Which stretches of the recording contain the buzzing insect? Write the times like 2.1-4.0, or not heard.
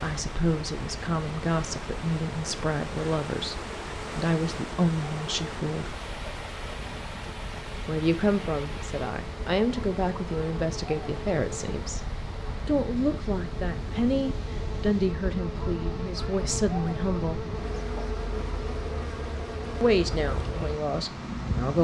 0.0-21.7.